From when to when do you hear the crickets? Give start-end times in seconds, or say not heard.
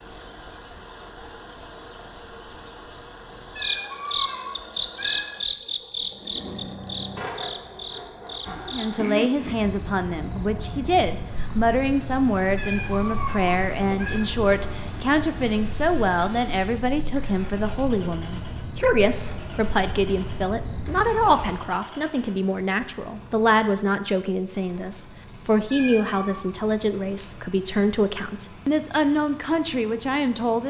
0.0-21.8.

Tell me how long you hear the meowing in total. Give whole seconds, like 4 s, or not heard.
4 s.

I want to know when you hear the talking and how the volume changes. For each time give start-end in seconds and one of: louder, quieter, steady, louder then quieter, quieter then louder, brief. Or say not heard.
8.7-30.6 steady.